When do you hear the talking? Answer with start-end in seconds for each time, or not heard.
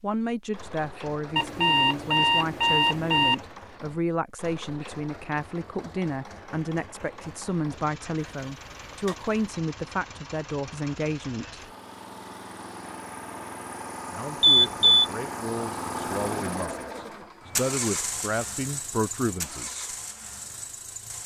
0.0-11.7, 14.1-19.9.